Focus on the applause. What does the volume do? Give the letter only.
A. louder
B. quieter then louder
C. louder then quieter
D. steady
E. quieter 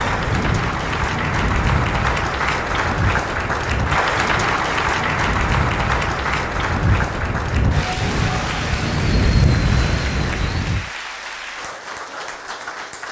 E.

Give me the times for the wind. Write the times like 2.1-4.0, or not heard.
0.0-10.9.